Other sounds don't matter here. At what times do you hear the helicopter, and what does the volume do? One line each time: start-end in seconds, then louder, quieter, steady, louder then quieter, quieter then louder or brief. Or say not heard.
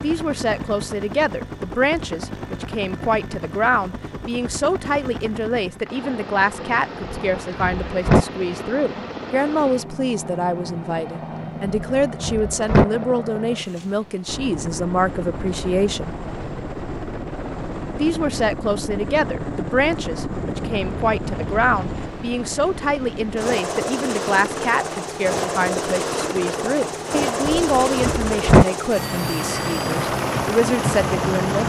0.0-31.6 louder.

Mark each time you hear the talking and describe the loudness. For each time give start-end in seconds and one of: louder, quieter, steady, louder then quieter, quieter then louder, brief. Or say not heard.
0.0-16.1 steady
17.9-31.6 steady.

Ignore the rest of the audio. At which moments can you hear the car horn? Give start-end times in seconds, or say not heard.
not heard.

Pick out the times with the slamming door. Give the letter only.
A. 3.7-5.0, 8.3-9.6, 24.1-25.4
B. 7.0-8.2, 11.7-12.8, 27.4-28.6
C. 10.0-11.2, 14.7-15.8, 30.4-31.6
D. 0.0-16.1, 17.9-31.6
B.